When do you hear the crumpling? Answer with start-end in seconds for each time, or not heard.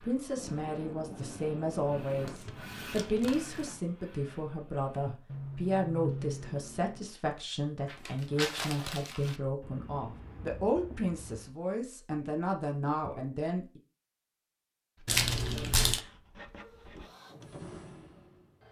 2.0-3.8, 7.8-9.4, 15.1-16.0.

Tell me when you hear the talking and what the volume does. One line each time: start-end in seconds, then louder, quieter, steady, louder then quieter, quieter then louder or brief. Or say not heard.
0.0-13.8 steady.